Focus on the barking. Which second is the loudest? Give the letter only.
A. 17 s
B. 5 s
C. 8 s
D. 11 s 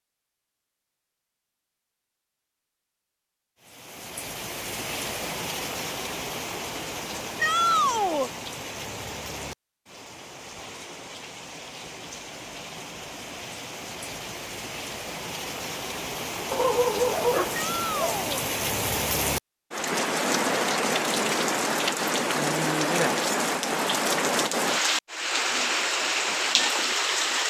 A.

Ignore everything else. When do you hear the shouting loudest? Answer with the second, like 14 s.
8 s.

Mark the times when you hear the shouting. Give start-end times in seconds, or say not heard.
7.4-8.3, 17.6-18.4.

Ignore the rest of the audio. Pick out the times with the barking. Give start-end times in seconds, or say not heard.
16.5-18.2.